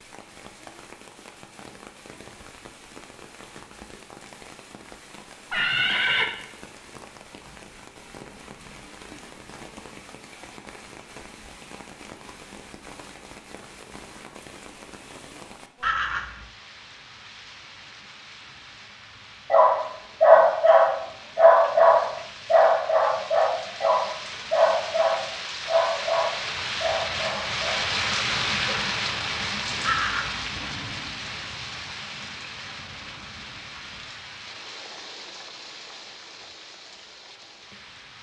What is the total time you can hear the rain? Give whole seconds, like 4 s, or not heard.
38 s.